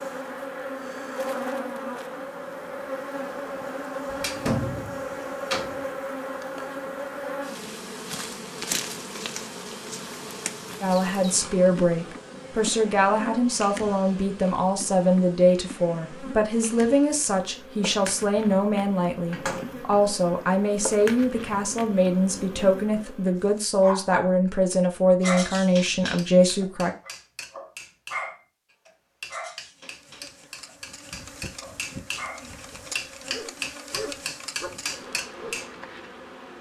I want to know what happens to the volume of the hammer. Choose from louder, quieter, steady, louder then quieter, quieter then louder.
louder.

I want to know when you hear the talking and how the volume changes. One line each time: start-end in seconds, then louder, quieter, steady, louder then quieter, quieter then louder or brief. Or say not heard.
10.8-26.9 steady.